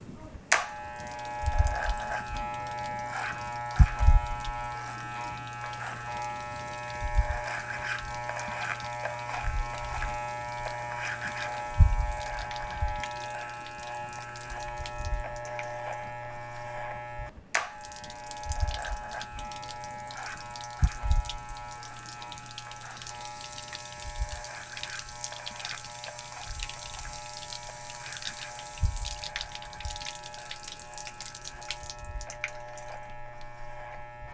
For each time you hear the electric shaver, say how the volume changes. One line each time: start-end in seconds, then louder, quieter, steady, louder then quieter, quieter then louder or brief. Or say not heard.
0.0-34.2 quieter.